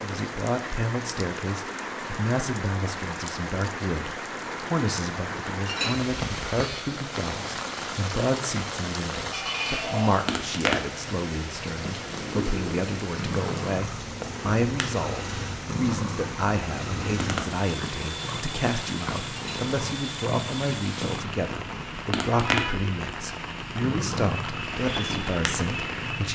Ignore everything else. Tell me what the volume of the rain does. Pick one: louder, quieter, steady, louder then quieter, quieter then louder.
steady.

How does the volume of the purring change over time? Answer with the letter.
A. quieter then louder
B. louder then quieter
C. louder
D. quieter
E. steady
E.